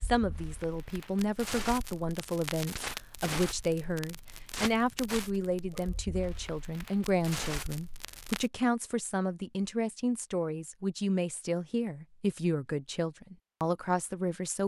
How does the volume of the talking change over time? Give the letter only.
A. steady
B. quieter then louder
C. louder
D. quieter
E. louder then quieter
A.